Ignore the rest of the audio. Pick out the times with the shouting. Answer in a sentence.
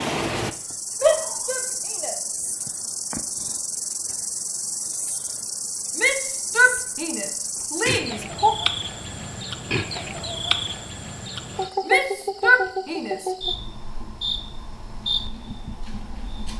The shouting can be heard from 1.0 to 2.1 s, from 6.0 to 8.5 s and from 11.8 to 13.3 s.